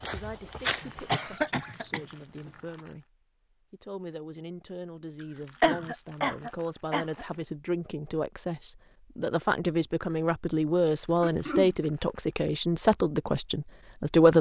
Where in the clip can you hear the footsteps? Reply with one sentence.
The footsteps can be heard from 0.0 to 1.5 s.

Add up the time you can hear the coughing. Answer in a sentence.
The coughing can be heard for 4 seconds in total.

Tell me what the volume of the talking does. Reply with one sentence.
The loudness of the talking goes up.